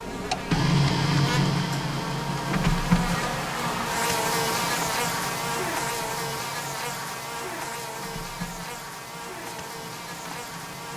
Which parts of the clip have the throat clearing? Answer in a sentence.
You can't hear the throat clearing here.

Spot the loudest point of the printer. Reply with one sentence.
The loudest moment of the printer is at 1 second.